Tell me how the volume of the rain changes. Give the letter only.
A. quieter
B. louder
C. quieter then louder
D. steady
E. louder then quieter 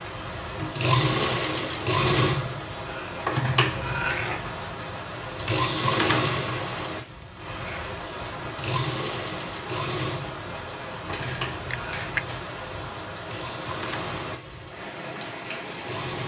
D.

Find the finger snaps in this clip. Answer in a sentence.
You can hear the finger snaps from 11.7 to 12.4 s.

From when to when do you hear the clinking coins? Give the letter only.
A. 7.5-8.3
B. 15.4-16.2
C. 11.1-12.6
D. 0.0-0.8
C.